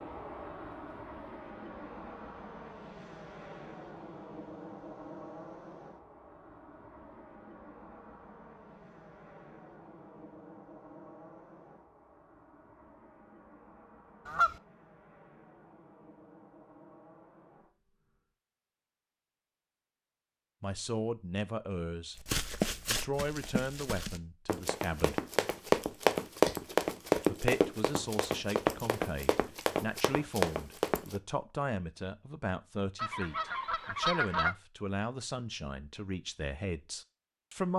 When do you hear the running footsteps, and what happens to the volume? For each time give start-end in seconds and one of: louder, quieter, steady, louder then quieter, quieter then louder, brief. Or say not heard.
22.1-31.2 louder then quieter.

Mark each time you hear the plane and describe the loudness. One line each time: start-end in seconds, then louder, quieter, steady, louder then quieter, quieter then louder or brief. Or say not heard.
0.0-18.3 quieter.